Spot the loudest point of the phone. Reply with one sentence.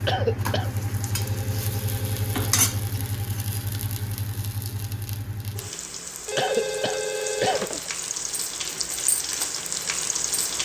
The loudest moment of the phone is at 7 seconds.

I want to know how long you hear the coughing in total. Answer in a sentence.
You can hear the coughing for 2 seconds altogether.